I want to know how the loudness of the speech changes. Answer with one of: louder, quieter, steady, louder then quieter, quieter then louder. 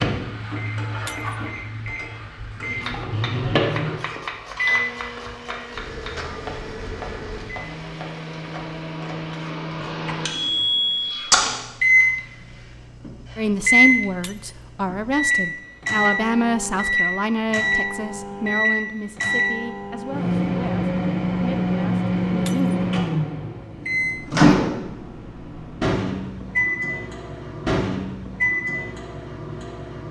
quieter.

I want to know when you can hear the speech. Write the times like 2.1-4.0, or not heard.
13.3-22.9.